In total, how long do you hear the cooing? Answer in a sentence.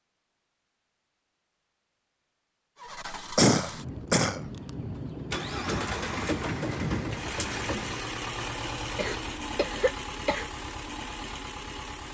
The cooing can be heard for 2 seconds in total.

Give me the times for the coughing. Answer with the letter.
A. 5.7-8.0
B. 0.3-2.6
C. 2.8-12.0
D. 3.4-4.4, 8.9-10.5
D.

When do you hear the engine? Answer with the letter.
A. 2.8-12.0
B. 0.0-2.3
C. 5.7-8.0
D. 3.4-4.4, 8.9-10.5
A.